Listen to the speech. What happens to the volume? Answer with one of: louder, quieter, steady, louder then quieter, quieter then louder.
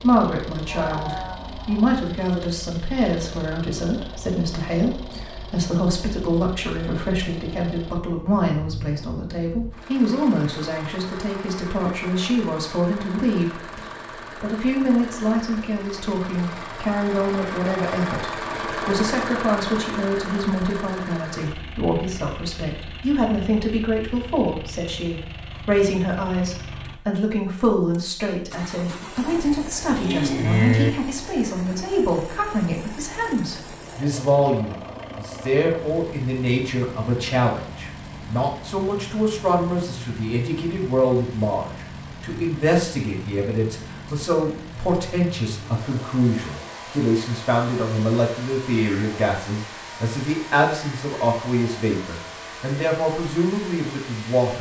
steady.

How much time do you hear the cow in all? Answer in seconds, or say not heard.
3 s.